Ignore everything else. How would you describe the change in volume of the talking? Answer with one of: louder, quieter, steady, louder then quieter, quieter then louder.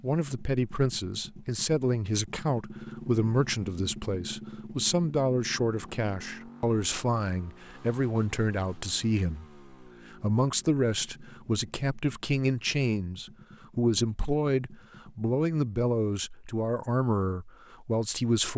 steady.